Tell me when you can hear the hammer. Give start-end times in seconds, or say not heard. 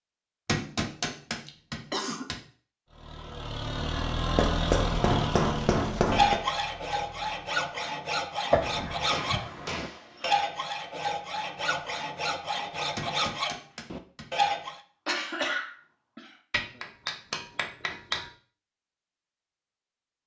0.5-2.4, 4.3-6.4, 9.1-10.3, 12.9-14.3, 16.5-18.2.